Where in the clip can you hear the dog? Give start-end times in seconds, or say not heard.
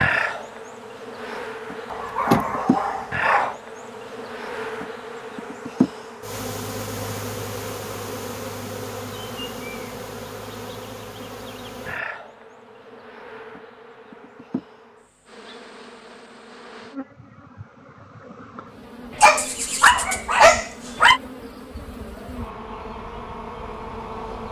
1.9-3.5, 19.2-21.2.